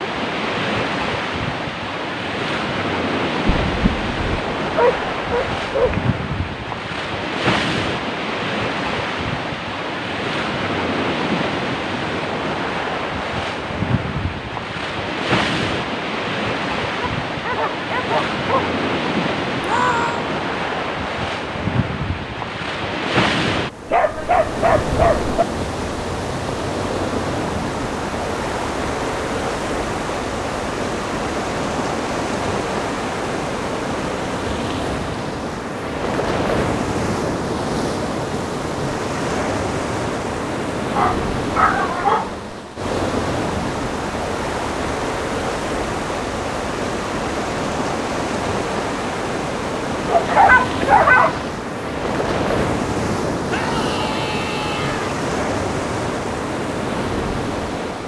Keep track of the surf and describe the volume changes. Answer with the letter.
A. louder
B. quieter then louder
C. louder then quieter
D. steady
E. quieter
D.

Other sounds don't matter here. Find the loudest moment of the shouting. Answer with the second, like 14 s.
20 s.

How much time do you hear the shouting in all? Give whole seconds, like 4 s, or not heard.
2 s.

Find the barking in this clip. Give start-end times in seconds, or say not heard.
3.5-6.0, 16.9-18.7, 23.9-25.4, 40.9-42.5, 50.0-51.5.